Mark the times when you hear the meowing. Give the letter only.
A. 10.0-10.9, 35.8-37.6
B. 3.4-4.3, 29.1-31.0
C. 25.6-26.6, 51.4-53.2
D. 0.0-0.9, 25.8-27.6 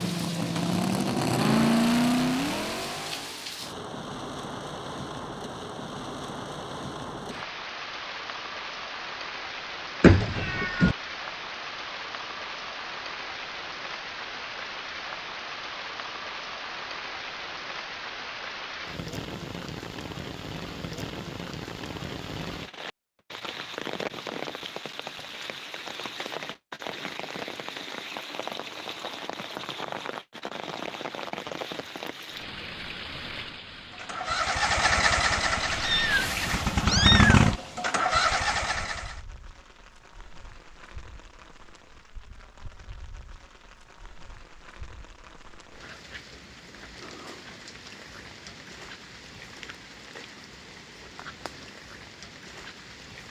A.